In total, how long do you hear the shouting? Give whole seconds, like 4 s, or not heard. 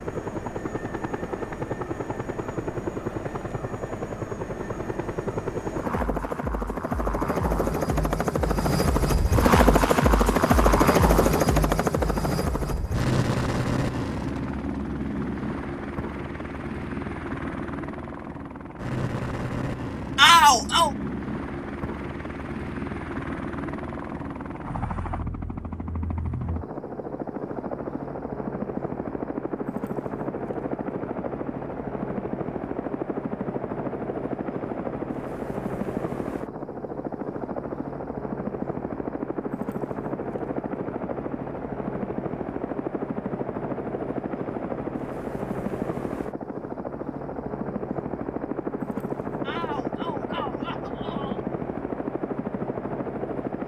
3 s.